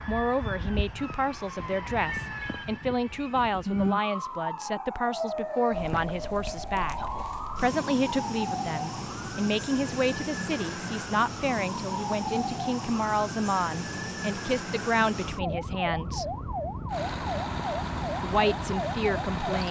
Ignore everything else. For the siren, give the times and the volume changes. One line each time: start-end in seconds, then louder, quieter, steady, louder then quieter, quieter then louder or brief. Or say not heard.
0.0-19.6 steady.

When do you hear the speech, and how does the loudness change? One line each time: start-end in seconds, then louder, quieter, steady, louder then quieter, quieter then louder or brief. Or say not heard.
0.1-16.4 steady
18.2-19.6 brief.